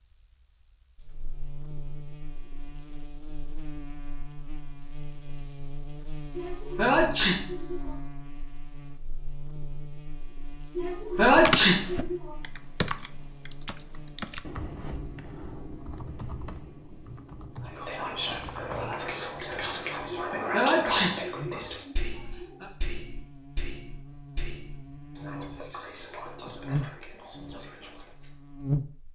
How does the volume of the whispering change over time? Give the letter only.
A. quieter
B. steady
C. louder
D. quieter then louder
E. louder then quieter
A.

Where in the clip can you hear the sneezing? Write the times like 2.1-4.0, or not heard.
6.3-7.8, 10.8-12.2, 20.4-22.6.